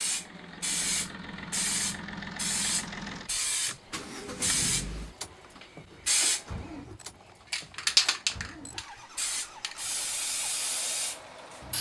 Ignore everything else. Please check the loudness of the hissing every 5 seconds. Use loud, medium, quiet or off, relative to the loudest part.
loud, loud, medium.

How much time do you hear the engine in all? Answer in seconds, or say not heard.
12 s.